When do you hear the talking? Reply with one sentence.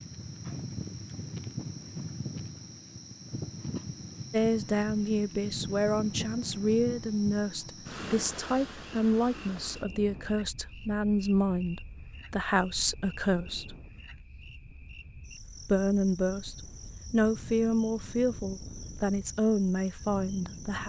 The talking can be heard from 4.3 to 13.8 s and from 15.7 to 20.8 s.